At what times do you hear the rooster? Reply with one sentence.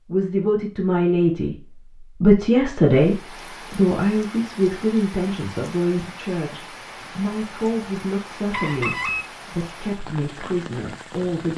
The rooster can be heard from 8.5 to 9.2 s.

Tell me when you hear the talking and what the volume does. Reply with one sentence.
The talking can be heard from 0.1 to 11.5 s, getting quieter.